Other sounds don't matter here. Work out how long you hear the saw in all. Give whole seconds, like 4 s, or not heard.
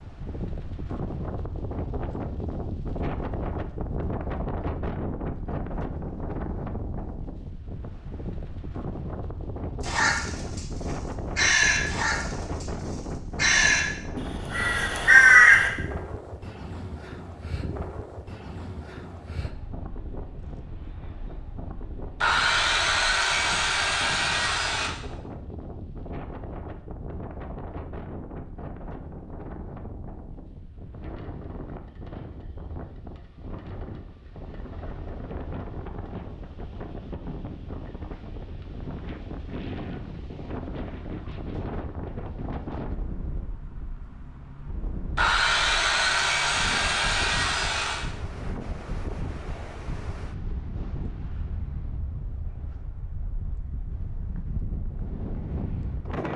6 s.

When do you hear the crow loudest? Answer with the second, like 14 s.
15 s.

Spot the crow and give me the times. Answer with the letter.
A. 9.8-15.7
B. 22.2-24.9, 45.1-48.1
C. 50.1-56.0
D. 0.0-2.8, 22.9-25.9
A.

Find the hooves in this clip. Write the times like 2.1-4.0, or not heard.
not heard.